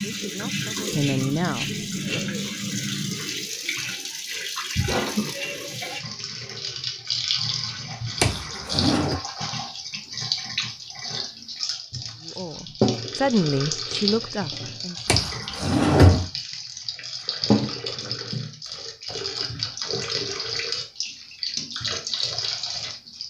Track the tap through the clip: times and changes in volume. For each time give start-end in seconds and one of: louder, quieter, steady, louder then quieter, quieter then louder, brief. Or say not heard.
0.0-23.2 steady.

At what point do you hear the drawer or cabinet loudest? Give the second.
16 s.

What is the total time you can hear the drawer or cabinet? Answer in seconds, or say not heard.
2 s.